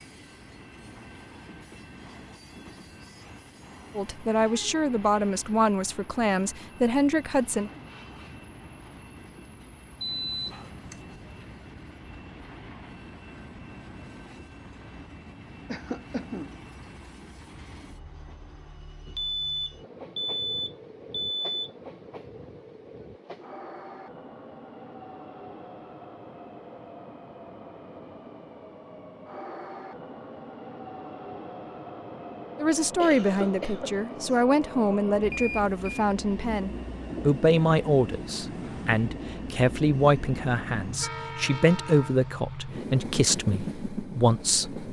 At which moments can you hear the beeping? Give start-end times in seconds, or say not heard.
10.0-11.1, 19.1-21.7, 35.3-36.0.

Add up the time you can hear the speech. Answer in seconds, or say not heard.
16 s.